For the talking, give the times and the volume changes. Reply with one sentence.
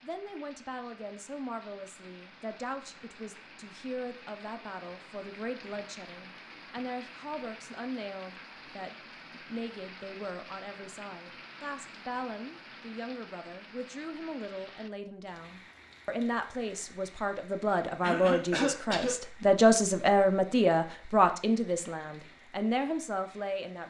You can hear the talking from 0.0 to 23.8 s, getting louder.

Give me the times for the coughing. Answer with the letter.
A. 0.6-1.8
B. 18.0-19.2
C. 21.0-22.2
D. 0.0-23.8
B.